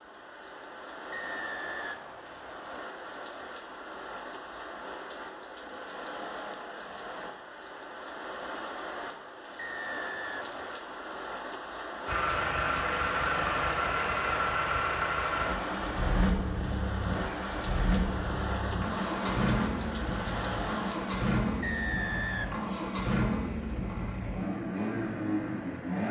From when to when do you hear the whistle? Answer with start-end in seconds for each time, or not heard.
1.1-2.9, 9.6-10.7, 21.6-22.8.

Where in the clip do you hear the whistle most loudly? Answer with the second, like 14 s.
22 s.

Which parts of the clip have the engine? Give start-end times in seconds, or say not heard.
12.1-26.0.